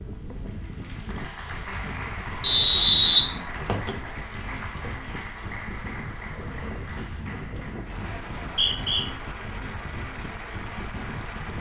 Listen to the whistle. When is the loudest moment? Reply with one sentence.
The loudest moment of the whistle is at 3 seconds.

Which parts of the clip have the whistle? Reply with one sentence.
You can hear the whistle from 2.4 to 3.9 s and from 8.4 to 9.1 s.